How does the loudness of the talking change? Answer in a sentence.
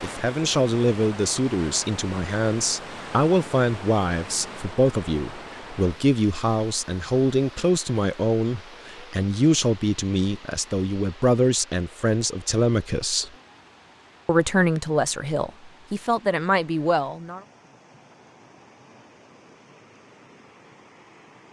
The loudness of the talking stays about the same.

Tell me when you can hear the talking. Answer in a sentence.
You can hear the talking from 0.0 to 13.3 s and from 14.2 to 17.4 s.